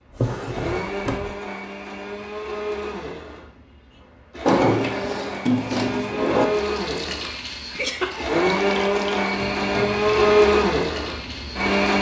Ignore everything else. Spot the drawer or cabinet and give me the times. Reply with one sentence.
The drawer or cabinet can be heard from 0.1 to 1.4 s, from 4.5 to 6.5 s and from 9.3 to 10.4 s.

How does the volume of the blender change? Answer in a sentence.
The loudness of the blender goes up.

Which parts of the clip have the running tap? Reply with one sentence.
The running tap can be heard from 6.5 to 11.8 s.